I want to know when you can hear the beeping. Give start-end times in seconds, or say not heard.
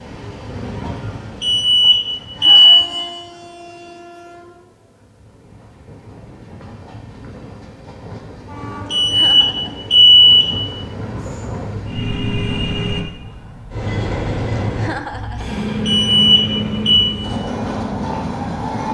1.4-2.9, 8.9-10.5, 15.8-17.1.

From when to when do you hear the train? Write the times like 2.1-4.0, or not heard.
0.0-18.8.